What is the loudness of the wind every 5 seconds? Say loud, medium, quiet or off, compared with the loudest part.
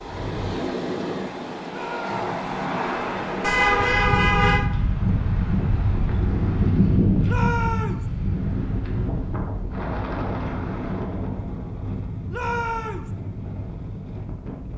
loud, loud, medium.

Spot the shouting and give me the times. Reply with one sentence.
The shouting can be heard from 1.6 to 2.2 s, from 7.2 to 8.1 s and from 12.3 to 13.1 s.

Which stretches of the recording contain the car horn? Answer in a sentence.
The car horn can be heard from 3.4 to 4.7 s.